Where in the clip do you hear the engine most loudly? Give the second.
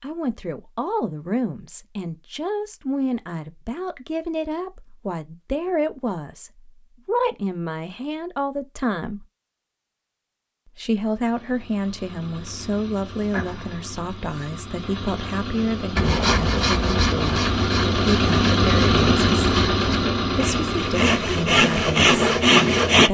19 s.